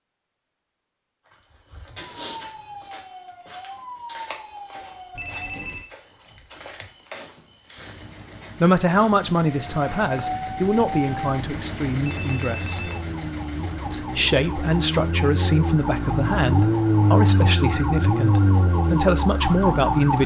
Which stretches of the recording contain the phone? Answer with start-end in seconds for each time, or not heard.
5.2-5.9, 12.1-13.0.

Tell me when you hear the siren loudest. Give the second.
17 s.